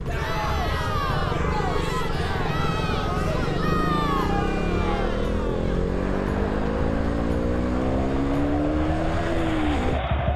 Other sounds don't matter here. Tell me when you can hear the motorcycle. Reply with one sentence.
You can hear the motorcycle from 0.0 to 10.3 s.